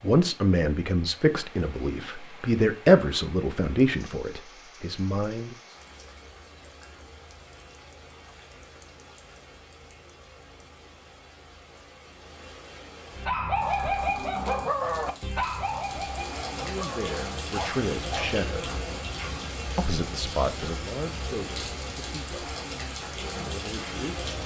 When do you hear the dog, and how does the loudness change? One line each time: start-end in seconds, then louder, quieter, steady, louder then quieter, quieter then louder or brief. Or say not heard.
13.1-18.8 quieter.